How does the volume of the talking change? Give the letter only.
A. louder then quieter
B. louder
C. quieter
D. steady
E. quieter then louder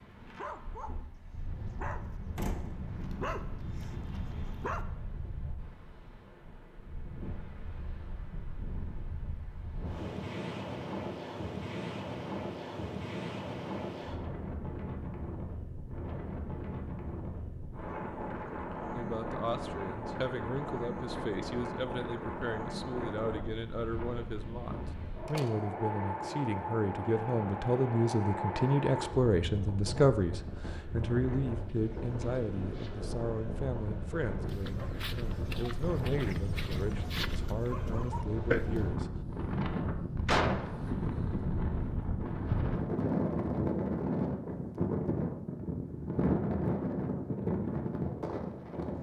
A.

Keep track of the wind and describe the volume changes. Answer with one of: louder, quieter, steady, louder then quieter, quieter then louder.
louder.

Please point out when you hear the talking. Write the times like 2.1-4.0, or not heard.
18.9-39.1.